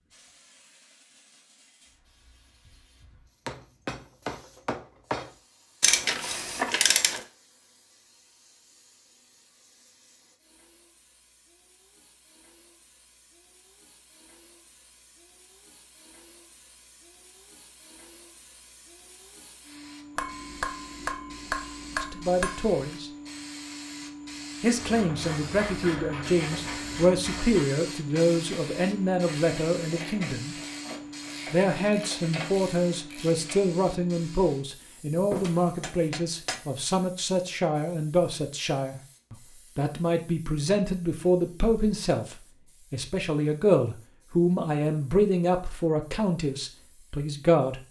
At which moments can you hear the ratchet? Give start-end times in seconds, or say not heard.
5.8-7.2, 24.7-33.6.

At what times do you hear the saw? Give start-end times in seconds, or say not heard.
not heard.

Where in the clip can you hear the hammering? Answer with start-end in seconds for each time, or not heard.
3.5-5.3, 20.1-22.8, 35.3-36.6.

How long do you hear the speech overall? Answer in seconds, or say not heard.
23 s.